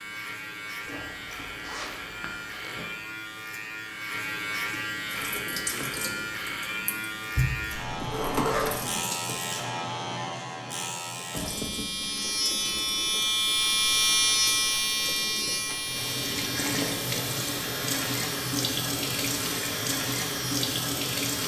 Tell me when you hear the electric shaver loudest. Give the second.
14 s.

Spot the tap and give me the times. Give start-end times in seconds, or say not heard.
5.0-9.7, 11.3-21.4.